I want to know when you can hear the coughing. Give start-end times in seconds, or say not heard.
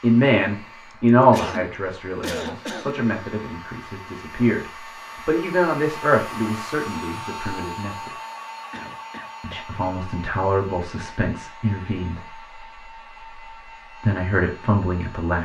1.3-3.0, 8.7-9.7.